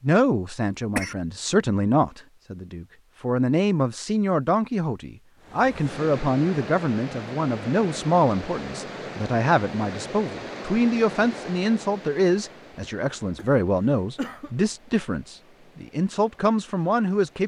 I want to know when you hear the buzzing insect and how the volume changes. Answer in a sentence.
The buzzing insect can't be heard in this clip.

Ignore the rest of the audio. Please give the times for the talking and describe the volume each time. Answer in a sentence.
You can hear the talking from 0.0 to 17.4 s, at a steady volume.